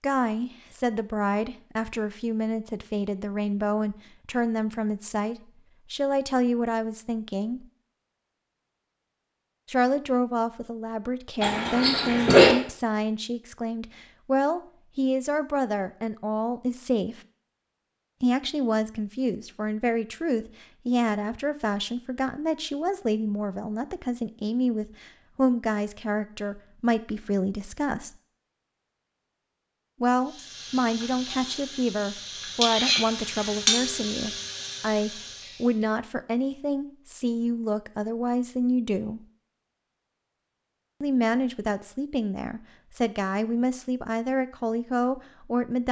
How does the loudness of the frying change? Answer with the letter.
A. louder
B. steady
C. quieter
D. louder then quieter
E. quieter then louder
D.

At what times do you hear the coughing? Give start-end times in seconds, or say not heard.
11.4-12.6.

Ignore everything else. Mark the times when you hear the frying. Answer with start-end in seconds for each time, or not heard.
30.2-35.9.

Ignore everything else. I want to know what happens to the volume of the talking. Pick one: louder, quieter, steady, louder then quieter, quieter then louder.
steady.